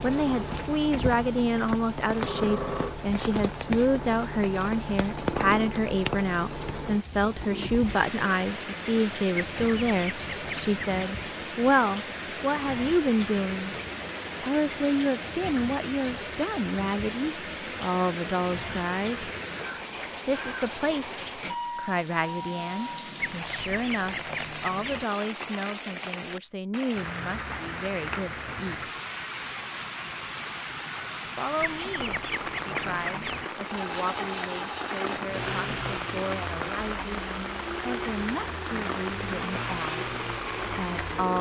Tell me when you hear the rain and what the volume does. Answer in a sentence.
You can hear the rain from 0.0 to 41.3 s, at a steady volume.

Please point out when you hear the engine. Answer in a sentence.
You can hear the engine from 0.0 to 7.0 s and from 33.6 to 41.3 s.